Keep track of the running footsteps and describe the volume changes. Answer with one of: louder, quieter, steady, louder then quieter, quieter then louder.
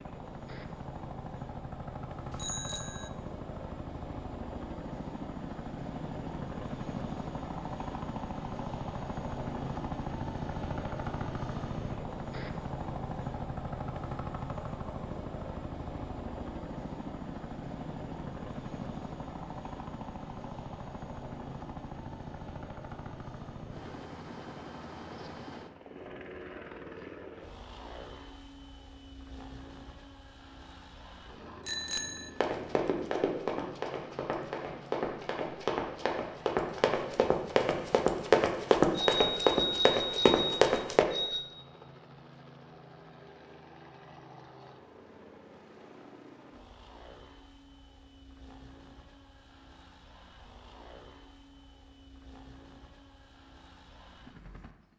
louder.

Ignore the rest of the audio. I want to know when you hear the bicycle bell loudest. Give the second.
40 s.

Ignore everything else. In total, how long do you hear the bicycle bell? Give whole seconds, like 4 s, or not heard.
4 s.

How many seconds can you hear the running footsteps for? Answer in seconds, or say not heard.
9 s.